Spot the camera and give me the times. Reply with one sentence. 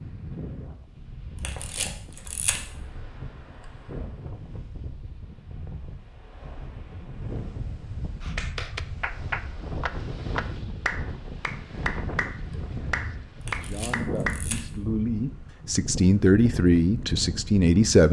The camera can be heard from 1.4 to 2.6 s and from 13.4 to 14.6 s.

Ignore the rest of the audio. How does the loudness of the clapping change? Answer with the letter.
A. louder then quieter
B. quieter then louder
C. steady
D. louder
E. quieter
C.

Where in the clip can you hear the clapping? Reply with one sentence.
The clapping can be heard from 8.2 to 14.4 s.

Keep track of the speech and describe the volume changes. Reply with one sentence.
The loudness of the speech goes up.